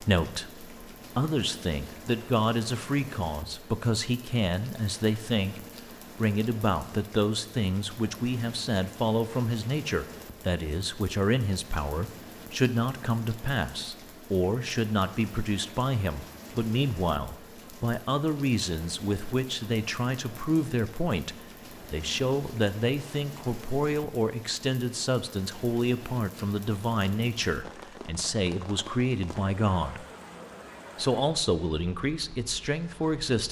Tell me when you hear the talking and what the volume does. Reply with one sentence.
The talking can be heard from 0.0 to 30.1 s, at a steady volume; and briefly from 30.9 to 33.4 s.